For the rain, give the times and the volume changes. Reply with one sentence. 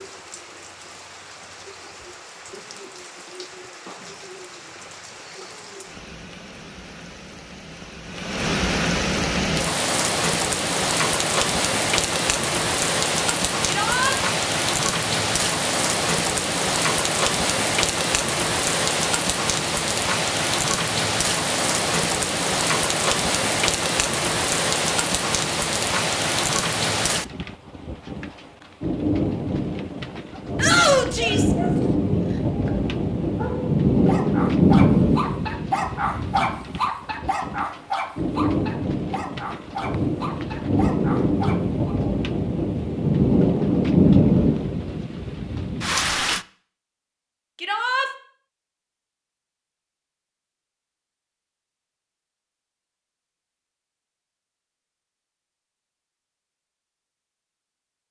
You can hear the rain from 0.0 to 46.5 s, getting louder.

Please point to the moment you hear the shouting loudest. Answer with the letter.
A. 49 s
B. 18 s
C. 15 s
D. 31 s
D.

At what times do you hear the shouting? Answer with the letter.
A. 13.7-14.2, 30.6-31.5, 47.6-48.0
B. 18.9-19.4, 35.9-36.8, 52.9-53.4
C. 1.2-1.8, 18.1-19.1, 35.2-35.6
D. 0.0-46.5
A.